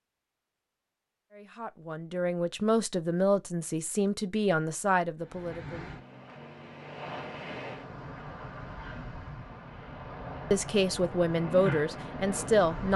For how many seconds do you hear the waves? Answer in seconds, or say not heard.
8 s.